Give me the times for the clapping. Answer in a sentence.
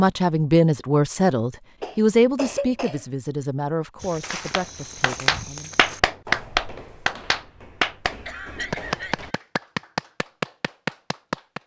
You can hear the clapping from 4.3 to 11.6 s.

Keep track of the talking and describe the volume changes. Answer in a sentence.
The loudness of the talking goes down.